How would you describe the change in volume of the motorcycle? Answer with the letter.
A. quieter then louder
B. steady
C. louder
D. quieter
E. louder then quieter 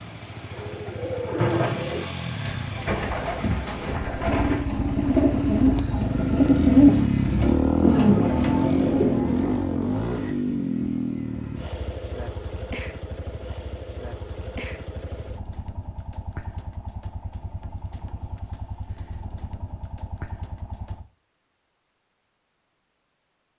E.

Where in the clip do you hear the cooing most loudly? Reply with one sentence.
The volume of the cooing peaks at 7 seconds.